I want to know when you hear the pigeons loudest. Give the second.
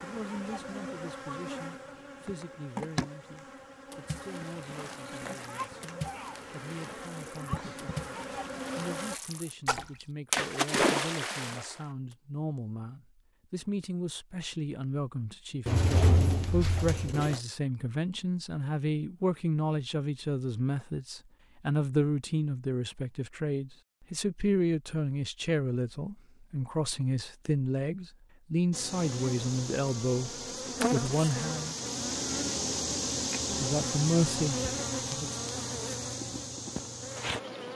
16 s.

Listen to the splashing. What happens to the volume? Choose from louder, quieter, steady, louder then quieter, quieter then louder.
louder.